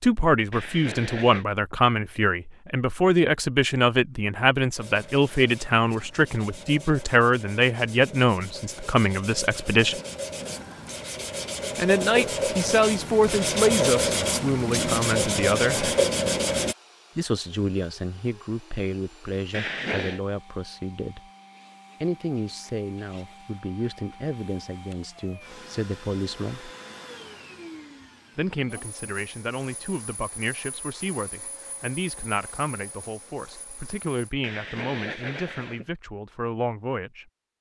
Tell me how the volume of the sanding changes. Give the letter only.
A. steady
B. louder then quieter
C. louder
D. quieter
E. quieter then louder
C.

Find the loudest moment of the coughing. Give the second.
20 s.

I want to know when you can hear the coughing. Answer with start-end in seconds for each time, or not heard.
0.5-1.4, 19.5-20.2, 34.4-35.9.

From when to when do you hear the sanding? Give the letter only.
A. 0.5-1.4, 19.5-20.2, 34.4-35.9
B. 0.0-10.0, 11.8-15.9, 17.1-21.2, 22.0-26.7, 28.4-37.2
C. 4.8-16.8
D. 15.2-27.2
C.